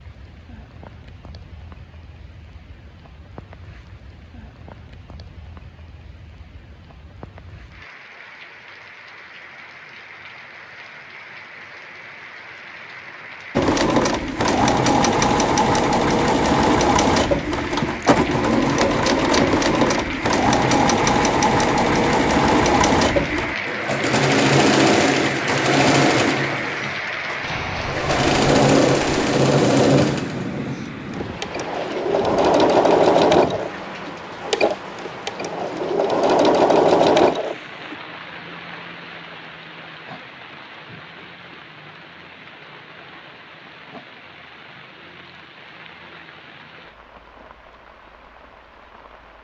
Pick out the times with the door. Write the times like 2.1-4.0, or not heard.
not heard.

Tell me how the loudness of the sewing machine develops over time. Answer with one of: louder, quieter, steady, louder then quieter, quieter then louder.
steady.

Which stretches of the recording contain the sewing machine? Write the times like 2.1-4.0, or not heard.
13.6-38.0.